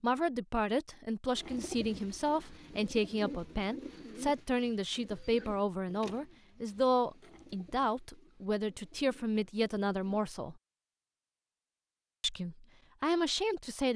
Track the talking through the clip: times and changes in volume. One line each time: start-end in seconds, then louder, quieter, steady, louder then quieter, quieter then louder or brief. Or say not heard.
0.0-10.6 steady
12.2-13.9 brief.